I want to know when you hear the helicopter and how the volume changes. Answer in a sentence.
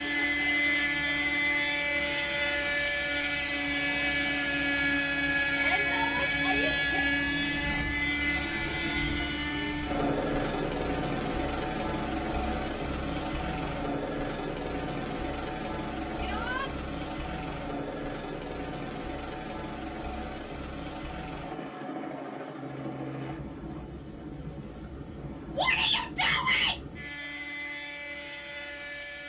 The helicopter can be heard from 0.0 to 29.2 s, getting quieter.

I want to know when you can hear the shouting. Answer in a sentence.
You can hear the shouting from 5.5 to 7.1 s, from 16.2 to 16.7 s and from 25.6 to 26.8 s.